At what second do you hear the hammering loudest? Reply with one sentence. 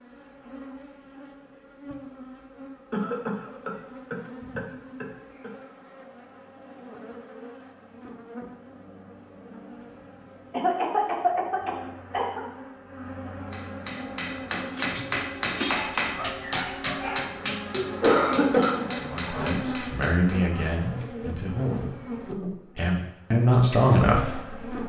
The volume of the hammering peaks at 16 seconds.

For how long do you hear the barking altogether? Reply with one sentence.
The barking can be heard for 2 seconds in total.